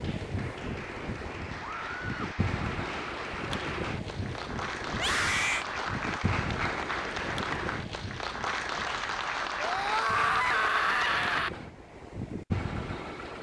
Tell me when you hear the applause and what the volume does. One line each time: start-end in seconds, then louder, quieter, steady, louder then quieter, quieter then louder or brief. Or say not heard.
0.0-11.4 louder.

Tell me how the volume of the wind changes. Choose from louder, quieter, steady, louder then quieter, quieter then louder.
quieter then louder.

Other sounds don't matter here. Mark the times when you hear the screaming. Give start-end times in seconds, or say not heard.
1.6-2.4, 4.9-5.7, 9.6-11.5.